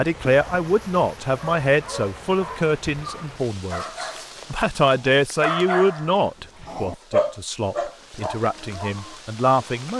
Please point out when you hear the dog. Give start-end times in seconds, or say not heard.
0.2-9.2.